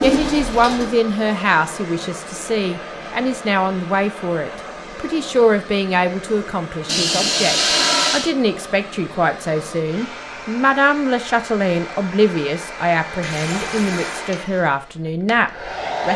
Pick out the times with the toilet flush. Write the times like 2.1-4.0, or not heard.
0.0-1.0, 6.8-8.3, 13.2-14.3.